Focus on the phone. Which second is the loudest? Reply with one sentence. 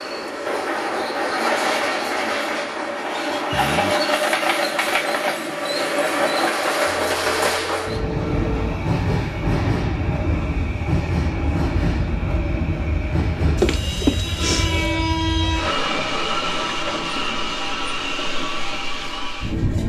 The volume of the phone peaks at 14 seconds.